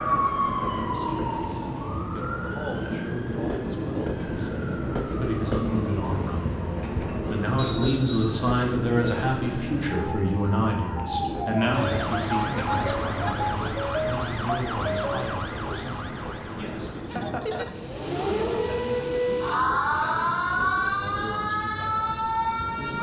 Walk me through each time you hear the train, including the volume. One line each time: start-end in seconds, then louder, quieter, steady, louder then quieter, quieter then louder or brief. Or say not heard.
0.0-22.9 quieter.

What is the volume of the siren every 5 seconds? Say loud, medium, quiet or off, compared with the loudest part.
medium, quiet, loud, loud, loud.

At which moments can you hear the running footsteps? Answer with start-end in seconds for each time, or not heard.
not heard.